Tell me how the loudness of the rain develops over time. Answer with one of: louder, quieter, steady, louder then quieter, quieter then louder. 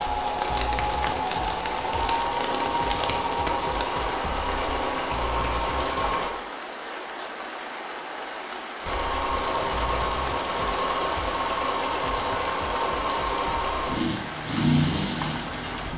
steady.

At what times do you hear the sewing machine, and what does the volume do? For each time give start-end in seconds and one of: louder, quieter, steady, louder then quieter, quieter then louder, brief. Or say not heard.
0.0-6.3 steady
8.8-15.9 steady.